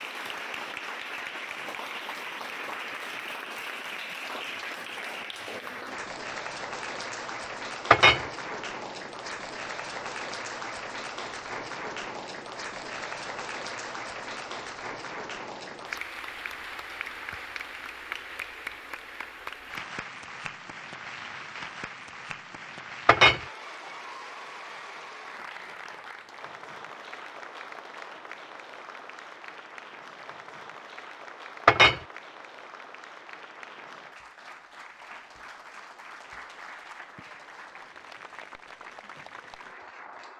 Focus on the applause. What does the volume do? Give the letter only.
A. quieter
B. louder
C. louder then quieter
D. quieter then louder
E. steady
A.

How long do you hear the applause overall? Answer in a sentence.
The applause can be heard for 40 seconds in total.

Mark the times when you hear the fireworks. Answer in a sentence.
The fireworks can't be heard in this clip.